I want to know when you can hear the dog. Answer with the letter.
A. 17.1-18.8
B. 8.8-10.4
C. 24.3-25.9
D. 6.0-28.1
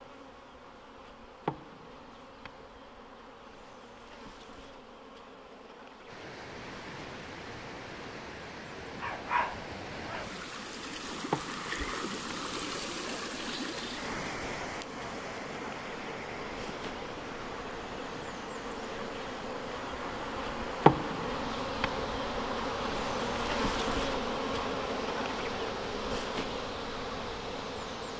B.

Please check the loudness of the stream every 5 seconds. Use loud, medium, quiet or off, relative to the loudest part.
off, medium, loud, medium, medium, medium.